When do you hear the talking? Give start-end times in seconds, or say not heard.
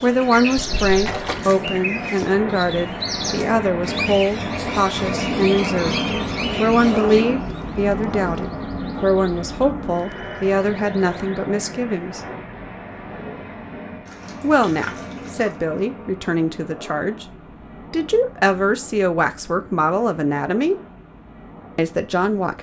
0.0-6.0, 6.5-12.2, 14.4-17.3, 17.9-20.8, 21.8-22.5.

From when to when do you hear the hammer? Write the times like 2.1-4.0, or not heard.
not heard.